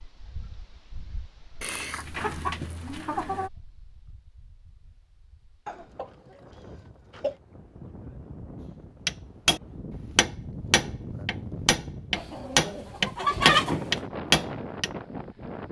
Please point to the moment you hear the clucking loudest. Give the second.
13 s.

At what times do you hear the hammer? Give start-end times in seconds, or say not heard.
9.1-14.9.